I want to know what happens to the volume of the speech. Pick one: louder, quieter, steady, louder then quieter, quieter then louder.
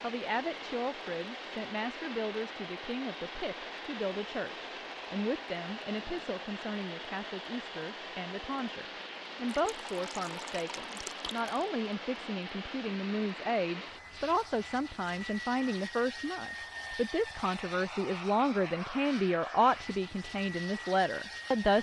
louder.